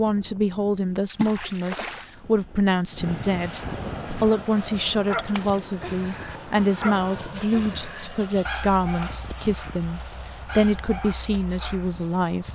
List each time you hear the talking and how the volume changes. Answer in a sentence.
The talking can be heard from 0.0 to 12.5 s, at a steady volume.